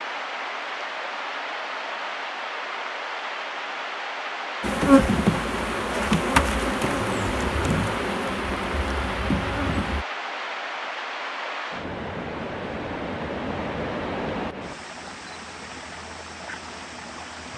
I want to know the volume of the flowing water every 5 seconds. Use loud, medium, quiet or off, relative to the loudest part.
loud, loud, loud, medium.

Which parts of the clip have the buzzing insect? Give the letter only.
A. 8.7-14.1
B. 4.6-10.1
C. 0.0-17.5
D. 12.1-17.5
B.